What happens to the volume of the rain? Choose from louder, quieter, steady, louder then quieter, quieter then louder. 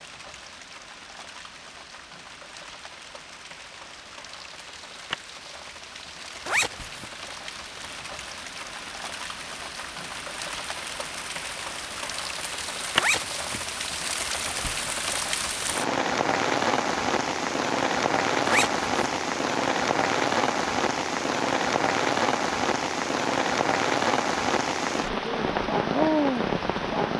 louder.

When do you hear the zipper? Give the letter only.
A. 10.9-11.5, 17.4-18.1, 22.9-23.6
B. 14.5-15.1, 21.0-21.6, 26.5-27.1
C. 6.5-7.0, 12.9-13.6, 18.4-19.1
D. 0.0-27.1
C.